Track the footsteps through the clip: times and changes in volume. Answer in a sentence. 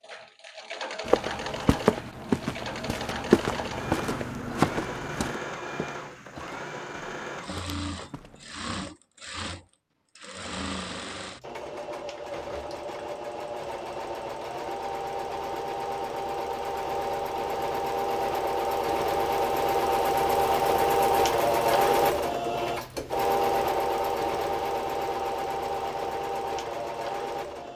You can hear the footsteps from 1.1 to 8.6 s, getting quieter.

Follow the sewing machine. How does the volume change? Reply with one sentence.
The volume of the sewing machine goes up.